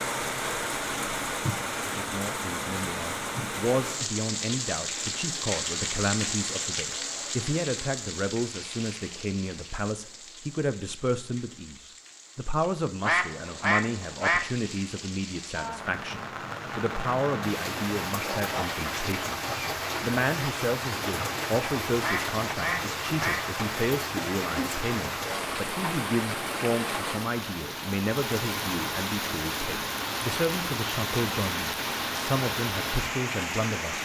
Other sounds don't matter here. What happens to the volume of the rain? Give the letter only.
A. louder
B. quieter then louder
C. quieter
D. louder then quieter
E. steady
B.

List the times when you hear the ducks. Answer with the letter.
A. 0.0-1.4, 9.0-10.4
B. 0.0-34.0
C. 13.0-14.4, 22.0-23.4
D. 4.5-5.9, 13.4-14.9
C.